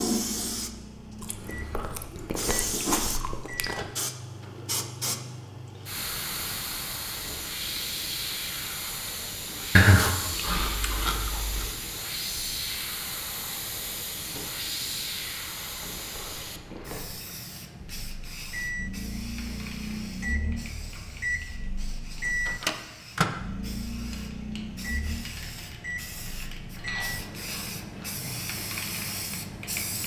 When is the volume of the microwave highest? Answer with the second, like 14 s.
23 s.